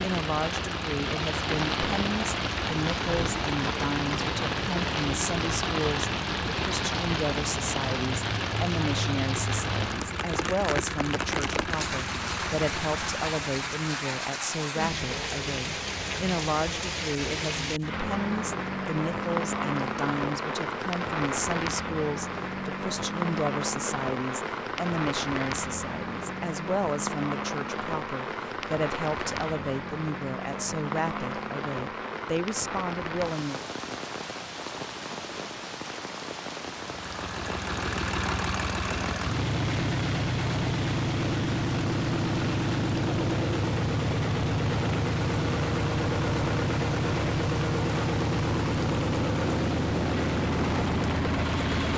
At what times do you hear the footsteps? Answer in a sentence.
You can't hear the footsteps here.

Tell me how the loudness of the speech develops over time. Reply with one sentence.
The volume of the speech stays about the same.